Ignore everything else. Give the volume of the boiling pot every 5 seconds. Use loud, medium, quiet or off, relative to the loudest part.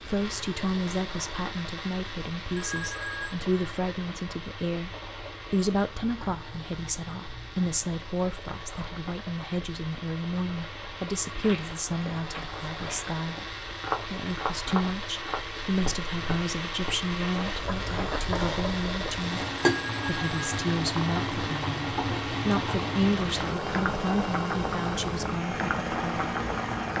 quiet, quiet, quiet, loud, loud, loud.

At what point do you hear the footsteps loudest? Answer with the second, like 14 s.
14 s.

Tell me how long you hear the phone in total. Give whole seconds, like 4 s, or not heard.
2 s.